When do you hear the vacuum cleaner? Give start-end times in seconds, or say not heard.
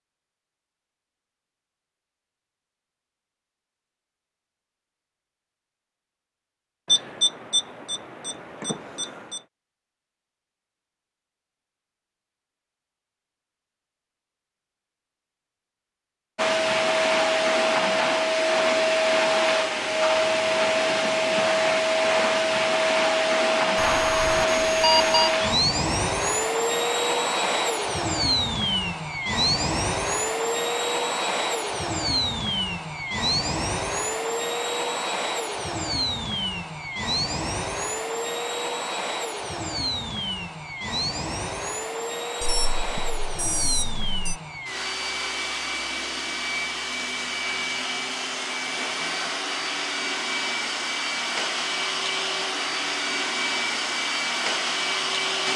16.4-55.5.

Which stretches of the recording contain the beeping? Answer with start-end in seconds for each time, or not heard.
6.8-9.4, 23.8-25.4, 42.4-44.4.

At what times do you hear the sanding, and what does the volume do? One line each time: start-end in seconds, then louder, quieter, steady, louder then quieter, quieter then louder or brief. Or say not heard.
not heard.